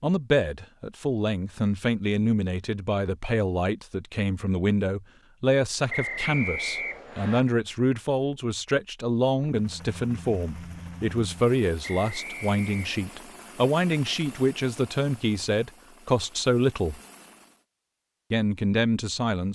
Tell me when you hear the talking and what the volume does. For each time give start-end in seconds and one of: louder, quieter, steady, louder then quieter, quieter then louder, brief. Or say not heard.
0.0-17.0 steady
18.3-19.4 brief.